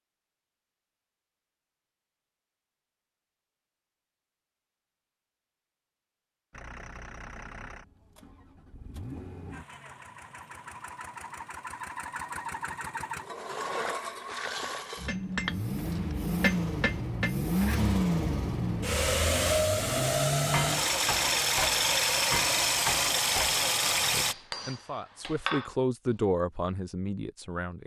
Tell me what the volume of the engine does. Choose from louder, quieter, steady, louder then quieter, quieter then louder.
louder.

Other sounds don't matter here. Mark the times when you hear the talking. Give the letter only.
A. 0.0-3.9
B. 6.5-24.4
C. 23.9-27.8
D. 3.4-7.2
C.